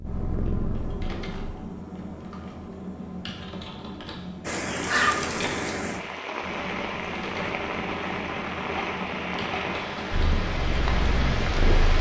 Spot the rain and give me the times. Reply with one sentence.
You can hear the rain from 4.5 to 11.9 s.